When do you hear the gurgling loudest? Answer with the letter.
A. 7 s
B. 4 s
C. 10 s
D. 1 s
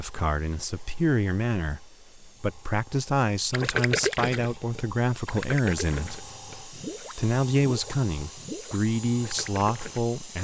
B.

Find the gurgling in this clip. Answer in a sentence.
You can hear the gurgling from 3.5 to 10.1 s.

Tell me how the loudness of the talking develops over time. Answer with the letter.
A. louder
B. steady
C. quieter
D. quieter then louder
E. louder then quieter
B.